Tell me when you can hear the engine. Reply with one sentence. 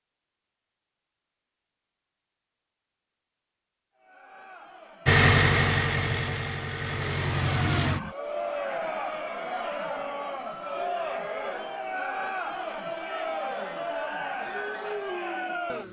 You can hear the engine from 5.0 to 8.1 s.